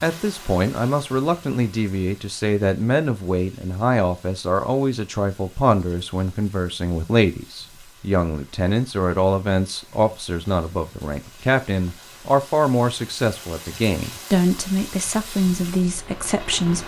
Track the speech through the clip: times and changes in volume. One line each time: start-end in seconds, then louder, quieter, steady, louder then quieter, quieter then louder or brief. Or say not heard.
0.0-16.8 steady.